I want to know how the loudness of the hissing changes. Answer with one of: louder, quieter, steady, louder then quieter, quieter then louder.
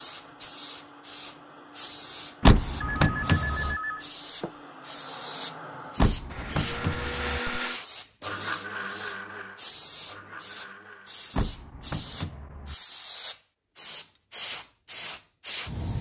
steady.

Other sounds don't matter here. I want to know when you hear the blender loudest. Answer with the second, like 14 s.
7 s.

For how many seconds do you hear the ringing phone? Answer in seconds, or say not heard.
2 s.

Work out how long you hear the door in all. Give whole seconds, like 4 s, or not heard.
4 s.